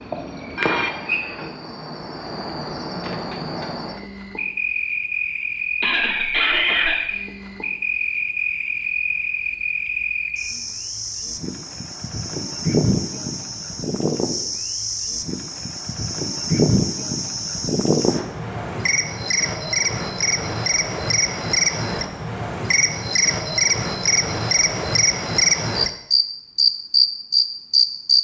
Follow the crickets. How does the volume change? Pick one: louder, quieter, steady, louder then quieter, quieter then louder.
louder.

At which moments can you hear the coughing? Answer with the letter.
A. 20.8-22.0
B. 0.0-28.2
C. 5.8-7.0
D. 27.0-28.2
C.